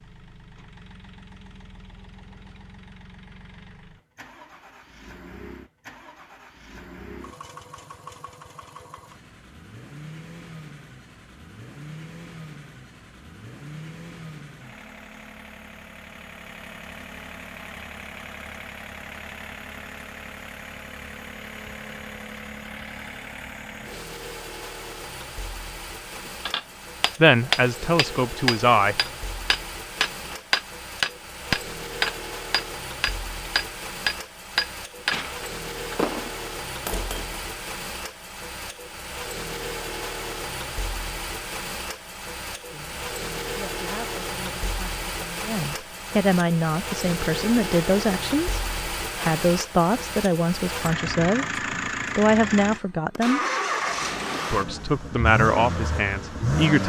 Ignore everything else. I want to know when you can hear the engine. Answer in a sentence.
The engine can be heard from 0.0 to 56.8 s.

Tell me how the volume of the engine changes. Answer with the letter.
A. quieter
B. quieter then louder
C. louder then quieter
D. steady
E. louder
E.